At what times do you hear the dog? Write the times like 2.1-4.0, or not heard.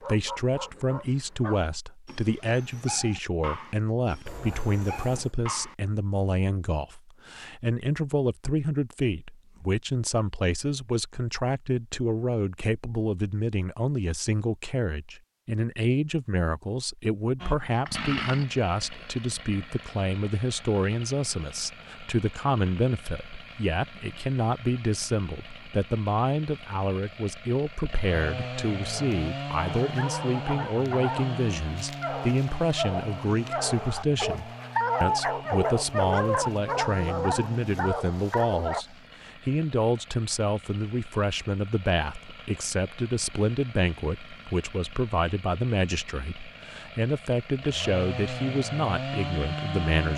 0.0-5.8, 28.9-38.9.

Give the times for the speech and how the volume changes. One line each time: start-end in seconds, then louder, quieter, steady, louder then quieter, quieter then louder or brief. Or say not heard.
0.0-50.1 steady.